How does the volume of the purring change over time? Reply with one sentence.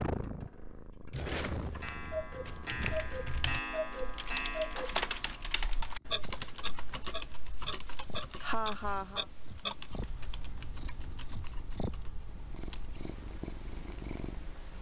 The volume of the purring goes down, then up.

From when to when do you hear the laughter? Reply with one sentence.
The laughter can be heard from 8.2 to 9.2 s.